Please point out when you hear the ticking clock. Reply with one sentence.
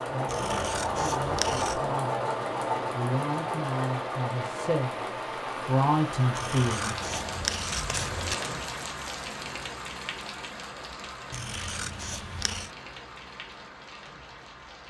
You can't hear the ticking clock here.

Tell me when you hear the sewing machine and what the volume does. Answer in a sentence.
You can hear the sewing machine from 0.0 to 8.7 s, getting quieter.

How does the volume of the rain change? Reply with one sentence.
The volume of the rain goes up, then down.